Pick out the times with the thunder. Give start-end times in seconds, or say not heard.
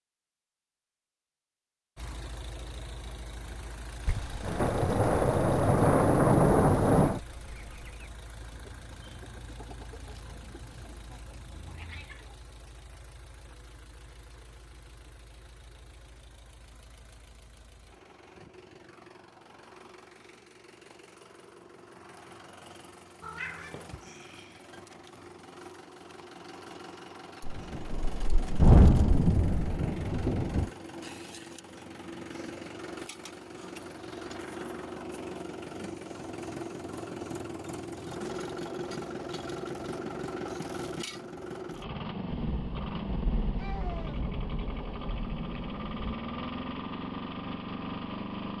4.0-7.2, 27.4-30.7, 42.3-46.1.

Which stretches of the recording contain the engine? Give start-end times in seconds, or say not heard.
1.9-48.5.